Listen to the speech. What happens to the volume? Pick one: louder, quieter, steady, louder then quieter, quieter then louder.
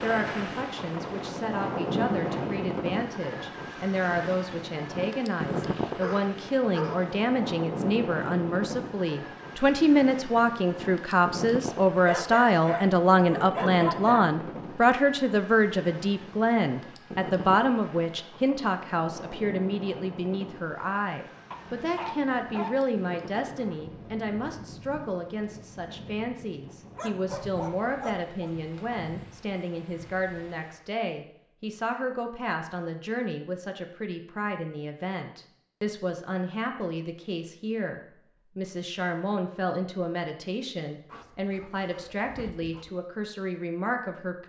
louder then quieter.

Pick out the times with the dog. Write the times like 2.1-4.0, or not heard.
6.0-7.2, 12.1-14.2, 21.5-22.9, 26.9-28.6, 41.1-42.9.